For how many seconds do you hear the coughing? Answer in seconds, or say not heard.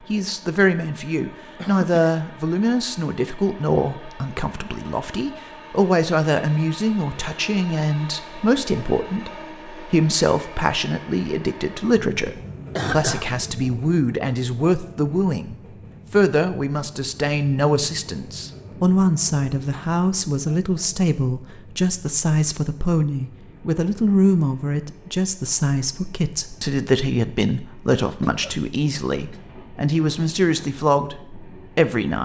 3 s.